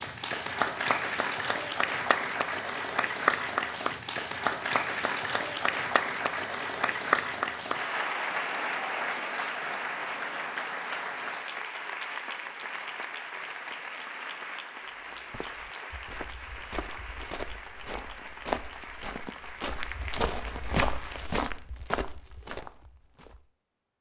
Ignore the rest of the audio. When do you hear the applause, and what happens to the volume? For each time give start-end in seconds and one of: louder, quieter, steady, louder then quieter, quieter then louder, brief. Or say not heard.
0.0-21.3 quieter.